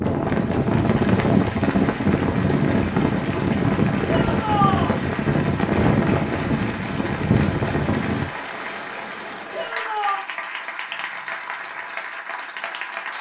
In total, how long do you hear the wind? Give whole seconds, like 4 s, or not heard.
8 s.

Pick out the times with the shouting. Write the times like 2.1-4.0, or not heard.
4.0-5.0, 9.5-10.2.